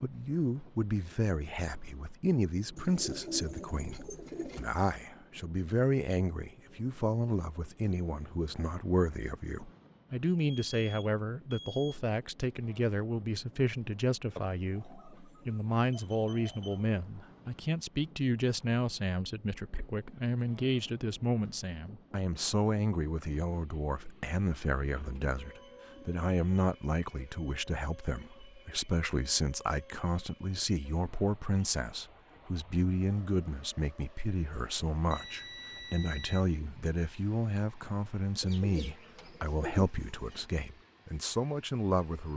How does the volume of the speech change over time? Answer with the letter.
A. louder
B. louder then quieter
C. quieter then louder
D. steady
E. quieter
D.